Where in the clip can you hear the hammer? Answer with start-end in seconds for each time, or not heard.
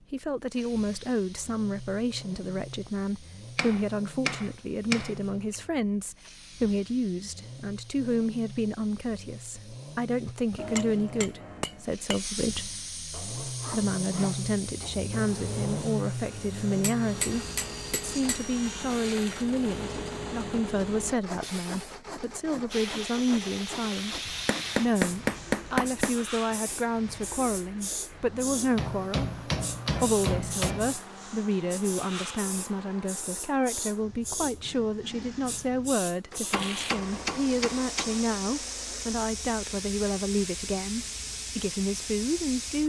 3.5-5.5, 10.6-12.2, 16.8-18.4, 24.4-26.1, 28.8-30.9, 36.5-38.2.